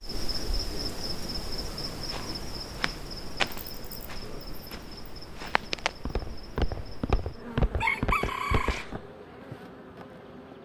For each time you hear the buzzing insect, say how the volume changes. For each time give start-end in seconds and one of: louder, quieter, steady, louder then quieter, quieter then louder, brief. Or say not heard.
0.0-10.6 quieter.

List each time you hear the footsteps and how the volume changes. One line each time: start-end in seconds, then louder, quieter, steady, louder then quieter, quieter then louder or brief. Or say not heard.
2.0-9.1 quieter then louder.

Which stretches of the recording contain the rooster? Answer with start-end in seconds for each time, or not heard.
7.8-8.8.